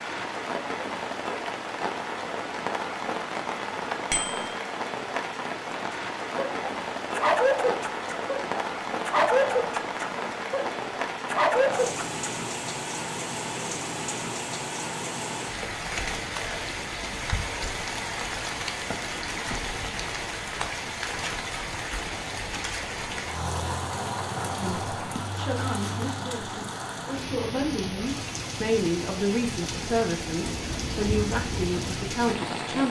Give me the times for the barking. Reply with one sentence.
You can hear the barking from 5.9 to 12.1 s.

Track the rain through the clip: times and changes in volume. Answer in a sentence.
The rain can be heard from 0.0 to 32.8 s, at a steady volume.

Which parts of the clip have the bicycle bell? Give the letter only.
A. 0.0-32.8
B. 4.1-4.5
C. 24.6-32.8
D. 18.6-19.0
B.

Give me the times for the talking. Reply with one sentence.
The talking can be heard from 24.6 to 32.8 s.